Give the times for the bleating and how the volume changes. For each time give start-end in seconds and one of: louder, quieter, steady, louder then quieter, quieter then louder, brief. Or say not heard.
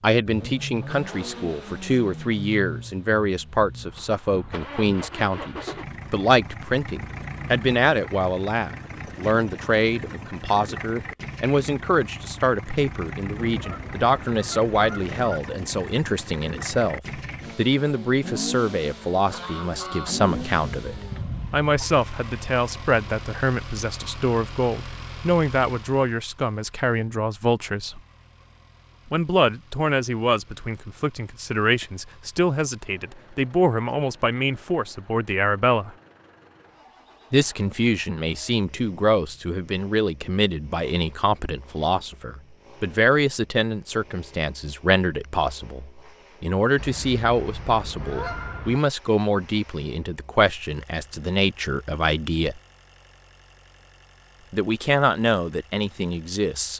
not heard.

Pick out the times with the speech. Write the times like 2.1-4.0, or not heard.
0.0-28.0, 29.1-36.0, 37.3-52.6, 54.5-56.7.